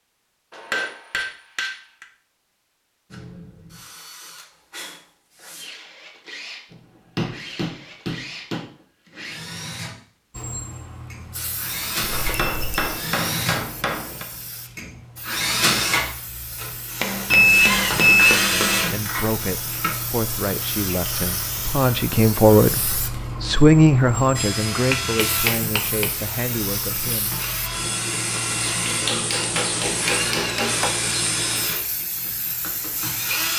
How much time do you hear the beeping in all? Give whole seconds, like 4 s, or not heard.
2 s.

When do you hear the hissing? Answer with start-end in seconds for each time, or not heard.
10.3-33.5.